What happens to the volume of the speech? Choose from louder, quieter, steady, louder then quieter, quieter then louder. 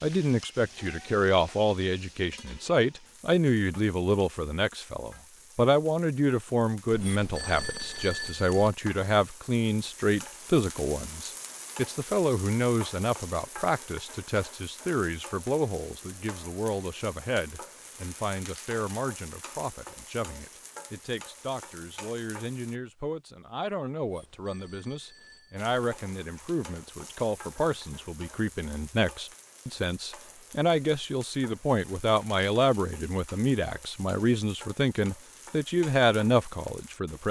quieter then louder.